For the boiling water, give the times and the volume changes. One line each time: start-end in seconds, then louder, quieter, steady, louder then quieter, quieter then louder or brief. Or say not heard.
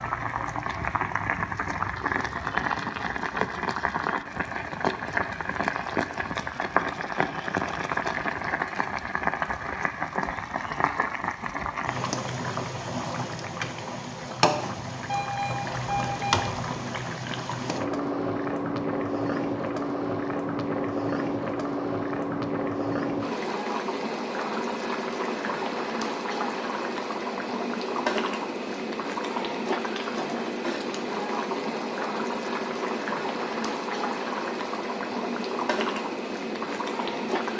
0.0-37.5 steady.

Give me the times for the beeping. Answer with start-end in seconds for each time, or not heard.
15.1-16.5.